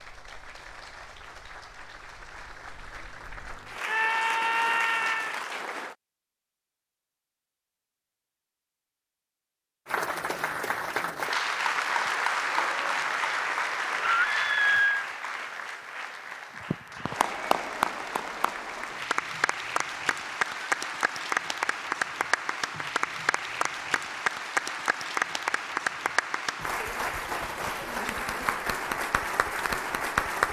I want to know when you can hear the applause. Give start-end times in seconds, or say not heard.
0.0-6.0, 9.8-30.4.